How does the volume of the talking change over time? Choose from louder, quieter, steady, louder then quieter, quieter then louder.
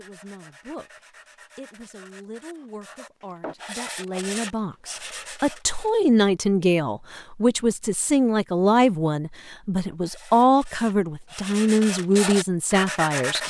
louder.